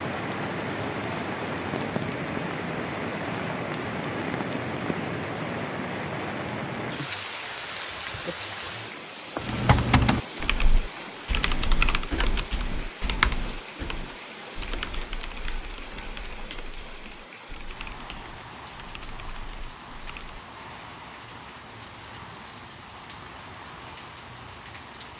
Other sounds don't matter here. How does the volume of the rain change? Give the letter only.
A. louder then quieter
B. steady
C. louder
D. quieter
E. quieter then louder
D.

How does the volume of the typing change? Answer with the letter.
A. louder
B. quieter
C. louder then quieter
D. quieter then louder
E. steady
B.